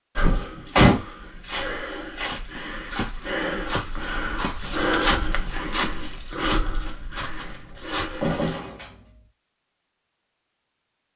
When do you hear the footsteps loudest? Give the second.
5 s.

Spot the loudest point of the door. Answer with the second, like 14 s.
1 s.